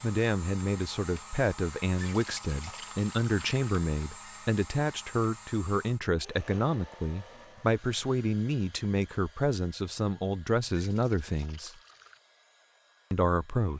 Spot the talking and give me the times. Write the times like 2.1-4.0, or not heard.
0.0-11.8, 13.1-13.7.